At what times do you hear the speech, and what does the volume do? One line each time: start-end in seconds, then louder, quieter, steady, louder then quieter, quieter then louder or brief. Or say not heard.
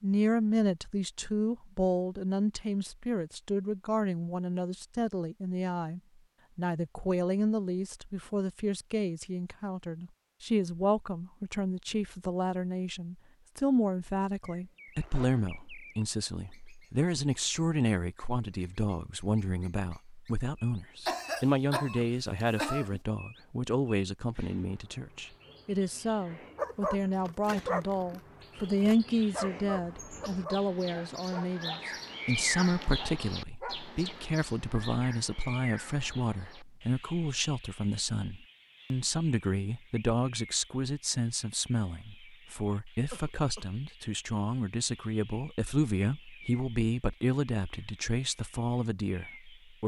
0.0-49.8 steady.